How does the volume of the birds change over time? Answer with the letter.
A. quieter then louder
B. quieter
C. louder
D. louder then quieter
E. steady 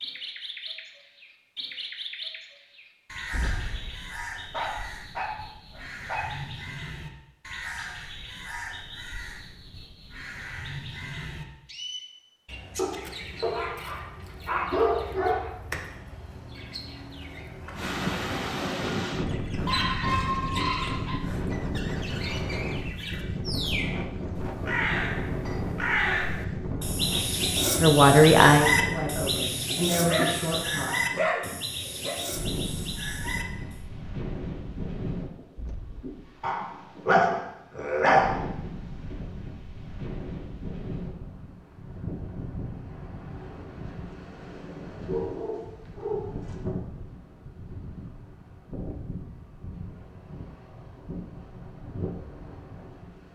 C.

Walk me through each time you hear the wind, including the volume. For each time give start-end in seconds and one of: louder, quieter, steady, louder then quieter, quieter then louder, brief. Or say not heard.
17.8-53.3 quieter.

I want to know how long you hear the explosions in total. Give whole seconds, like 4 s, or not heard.
2 s.